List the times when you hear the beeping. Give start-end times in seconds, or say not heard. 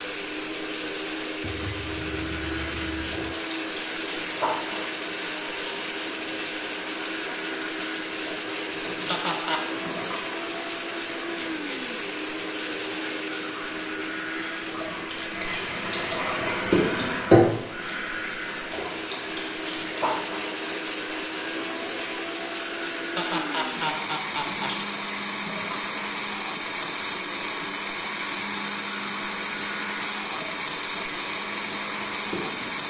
1.4-3.4.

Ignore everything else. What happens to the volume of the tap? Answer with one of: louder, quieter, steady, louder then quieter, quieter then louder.
louder then quieter.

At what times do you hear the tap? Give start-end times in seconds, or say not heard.
0.0-32.8.